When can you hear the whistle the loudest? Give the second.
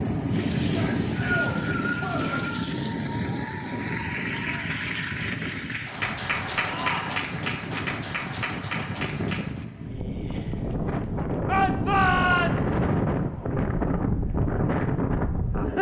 1 s.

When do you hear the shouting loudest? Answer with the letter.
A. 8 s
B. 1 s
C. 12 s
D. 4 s
C.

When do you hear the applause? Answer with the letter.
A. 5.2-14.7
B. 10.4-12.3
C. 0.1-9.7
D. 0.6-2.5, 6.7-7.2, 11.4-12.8
C.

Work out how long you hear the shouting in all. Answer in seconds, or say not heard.
4 s.